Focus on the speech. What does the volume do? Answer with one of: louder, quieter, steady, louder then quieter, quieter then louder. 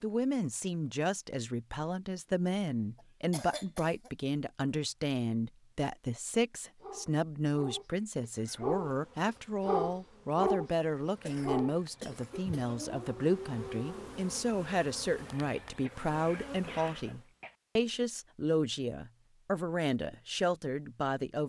steady.